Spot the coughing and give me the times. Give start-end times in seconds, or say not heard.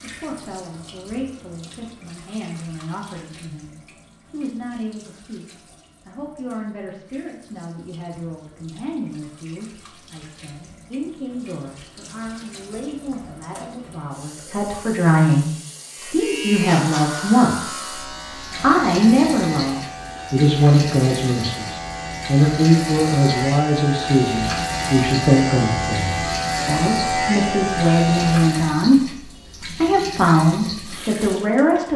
not heard.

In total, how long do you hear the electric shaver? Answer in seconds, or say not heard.
13 s.